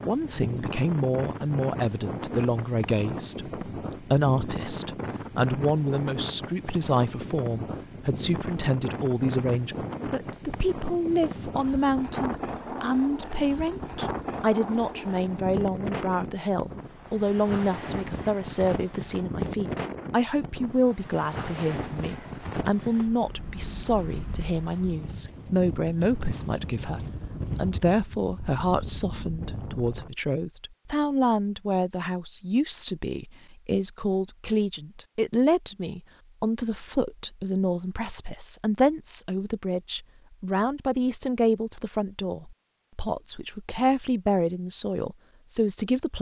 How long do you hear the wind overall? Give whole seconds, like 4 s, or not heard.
30 s.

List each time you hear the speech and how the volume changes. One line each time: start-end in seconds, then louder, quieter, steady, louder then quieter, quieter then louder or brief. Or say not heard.
0.0-46.1 steady.